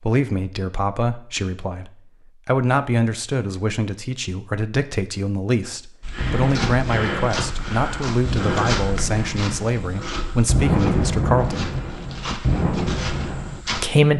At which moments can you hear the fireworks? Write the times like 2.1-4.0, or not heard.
6.2-13.6.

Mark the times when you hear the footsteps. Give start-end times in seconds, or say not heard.
6.0-13.8.